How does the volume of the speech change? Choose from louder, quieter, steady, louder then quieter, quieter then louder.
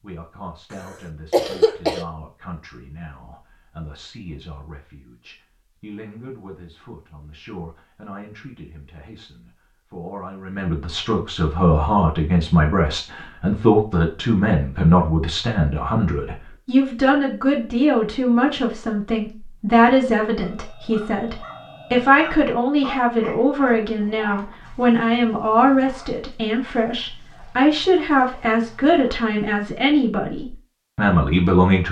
louder.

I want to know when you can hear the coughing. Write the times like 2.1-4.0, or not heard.
1.3-2.0.